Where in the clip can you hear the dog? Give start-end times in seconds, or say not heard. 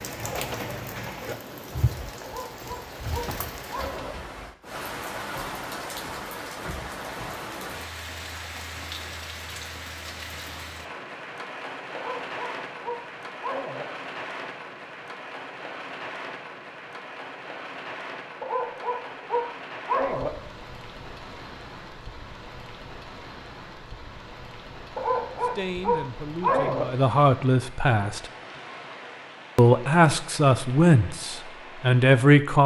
2.2-4.2, 11.9-13.8, 18.4-20.3, 24.9-26.9.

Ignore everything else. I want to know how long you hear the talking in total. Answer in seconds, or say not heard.
6 s.